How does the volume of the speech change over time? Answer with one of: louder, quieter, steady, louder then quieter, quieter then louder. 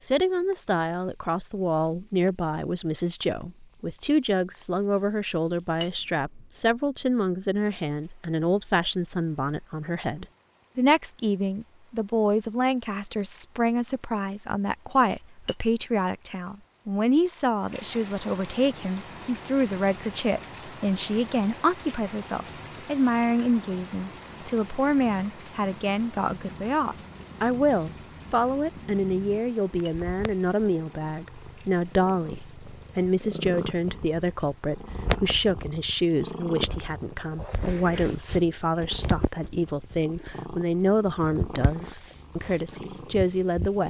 steady.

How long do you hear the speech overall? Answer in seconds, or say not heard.
44 s.